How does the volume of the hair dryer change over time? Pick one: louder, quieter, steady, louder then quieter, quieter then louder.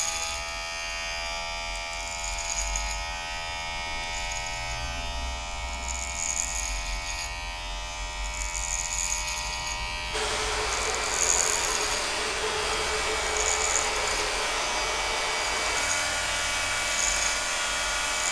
steady.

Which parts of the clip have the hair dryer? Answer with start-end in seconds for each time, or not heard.
10.1-18.2.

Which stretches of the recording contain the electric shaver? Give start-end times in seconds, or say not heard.
0.0-18.2.